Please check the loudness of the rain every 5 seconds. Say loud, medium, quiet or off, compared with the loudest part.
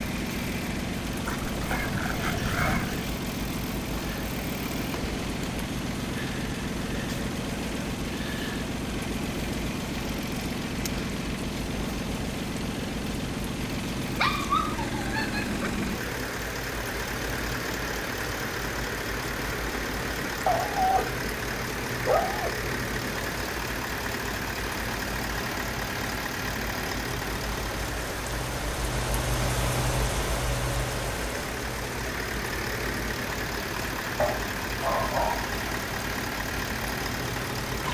medium, medium, medium, medium, medium, loud, loud, medium.